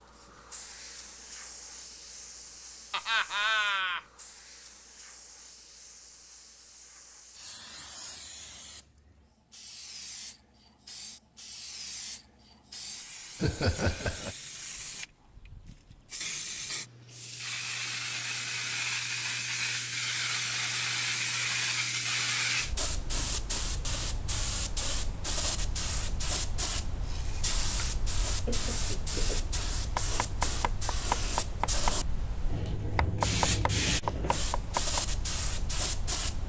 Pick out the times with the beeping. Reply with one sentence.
The beeping can't be heard in this clip.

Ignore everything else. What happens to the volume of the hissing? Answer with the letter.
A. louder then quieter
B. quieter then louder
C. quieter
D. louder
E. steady
D.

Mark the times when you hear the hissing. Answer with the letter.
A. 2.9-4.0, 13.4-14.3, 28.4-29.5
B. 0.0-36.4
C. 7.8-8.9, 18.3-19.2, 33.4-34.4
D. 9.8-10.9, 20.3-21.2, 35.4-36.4
B.